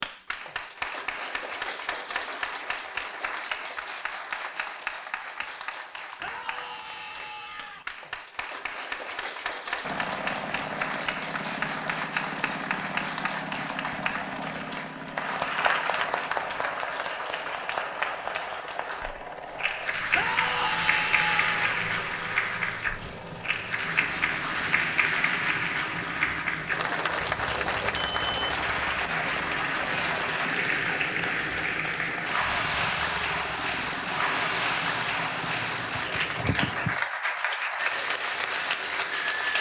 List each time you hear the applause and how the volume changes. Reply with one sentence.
You can hear the applause from 0.0 to 39.5 s, getting louder.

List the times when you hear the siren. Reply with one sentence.
You can't hear the siren here.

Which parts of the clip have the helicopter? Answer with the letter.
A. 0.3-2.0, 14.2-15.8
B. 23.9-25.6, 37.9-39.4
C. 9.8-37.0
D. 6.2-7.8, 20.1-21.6
C.